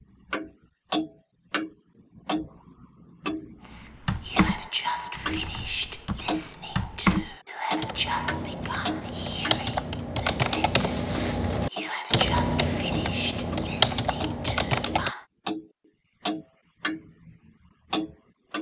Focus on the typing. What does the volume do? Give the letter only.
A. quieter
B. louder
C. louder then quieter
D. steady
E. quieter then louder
B.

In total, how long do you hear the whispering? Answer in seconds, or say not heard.
12 s.